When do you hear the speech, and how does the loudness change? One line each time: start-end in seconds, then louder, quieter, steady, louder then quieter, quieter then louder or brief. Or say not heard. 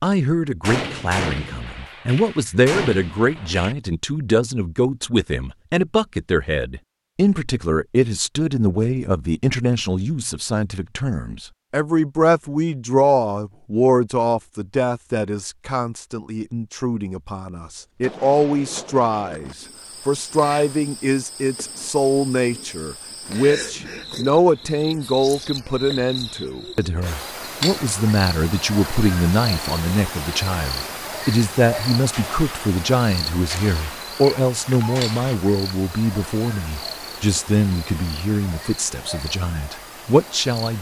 0.0-40.7 steady.